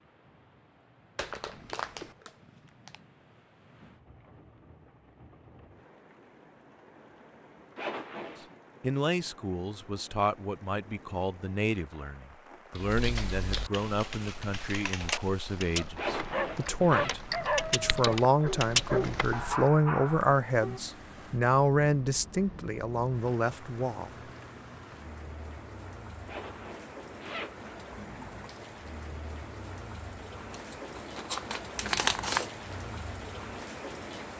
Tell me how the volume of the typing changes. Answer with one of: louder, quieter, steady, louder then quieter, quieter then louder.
louder.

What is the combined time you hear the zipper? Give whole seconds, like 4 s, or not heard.
3 s.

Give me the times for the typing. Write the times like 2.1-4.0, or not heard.
12.8-19.6.